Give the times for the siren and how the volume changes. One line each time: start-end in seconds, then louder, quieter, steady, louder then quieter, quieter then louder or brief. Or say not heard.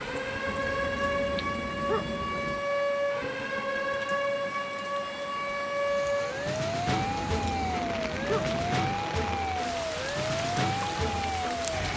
0.0-11.9 steady.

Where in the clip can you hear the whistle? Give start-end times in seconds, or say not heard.
not heard.